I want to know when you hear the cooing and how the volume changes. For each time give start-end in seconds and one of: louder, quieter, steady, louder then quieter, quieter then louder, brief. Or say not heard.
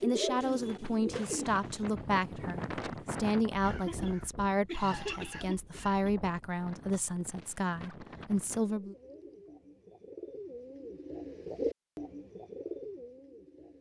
0.0-1.8 brief
8.6-13.7 louder then quieter.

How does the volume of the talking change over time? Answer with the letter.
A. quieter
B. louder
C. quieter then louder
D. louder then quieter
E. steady
E.